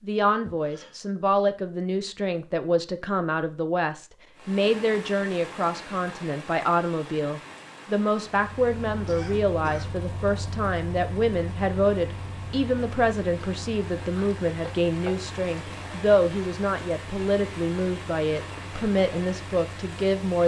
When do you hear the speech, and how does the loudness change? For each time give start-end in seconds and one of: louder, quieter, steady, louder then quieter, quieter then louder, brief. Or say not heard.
0.0-20.4 steady.